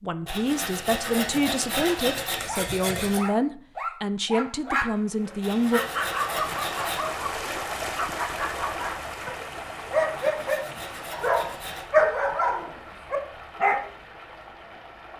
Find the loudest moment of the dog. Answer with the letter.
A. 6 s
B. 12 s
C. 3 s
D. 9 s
B.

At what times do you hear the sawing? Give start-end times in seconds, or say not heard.
0.2-3.2, 5.4-7.0, 10.2-11.9.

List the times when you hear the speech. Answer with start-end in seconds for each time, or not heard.
0.0-5.8.